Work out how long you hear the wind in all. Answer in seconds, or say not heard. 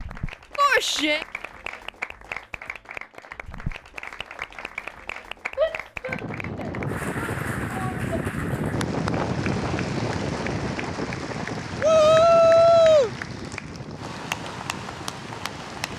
10 s.